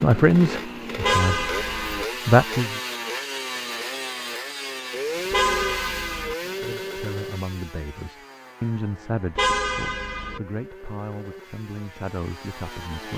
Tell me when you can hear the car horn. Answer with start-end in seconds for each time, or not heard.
1.0-2.0, 5.3-6.3, 9.3-10.4.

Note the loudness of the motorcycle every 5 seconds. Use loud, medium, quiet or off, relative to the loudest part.
loud, loud, medium.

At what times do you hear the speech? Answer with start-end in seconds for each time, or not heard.
0.0-1.5, 2.2-2.8, 6.6-13.1.